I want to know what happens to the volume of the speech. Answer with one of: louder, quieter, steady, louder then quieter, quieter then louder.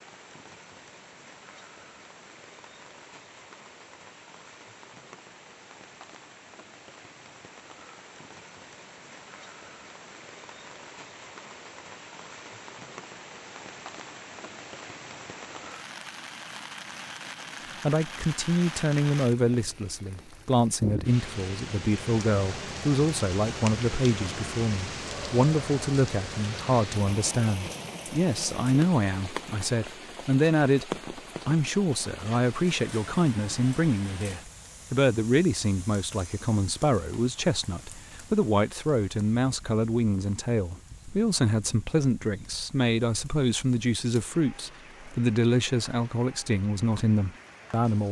steady.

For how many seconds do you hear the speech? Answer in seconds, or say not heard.
30 s.